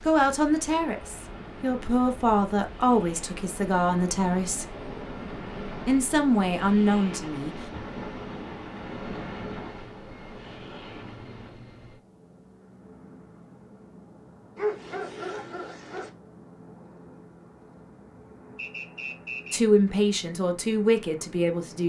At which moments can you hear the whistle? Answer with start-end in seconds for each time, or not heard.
18.6-19.6.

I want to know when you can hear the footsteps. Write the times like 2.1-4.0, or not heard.
not heard.